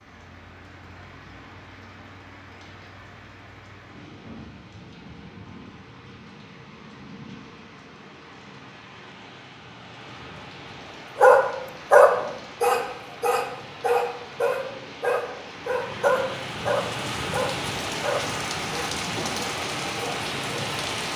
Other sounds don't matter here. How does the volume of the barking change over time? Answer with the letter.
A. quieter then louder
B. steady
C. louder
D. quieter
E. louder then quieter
D.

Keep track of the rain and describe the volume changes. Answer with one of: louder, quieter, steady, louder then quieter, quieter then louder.
louder.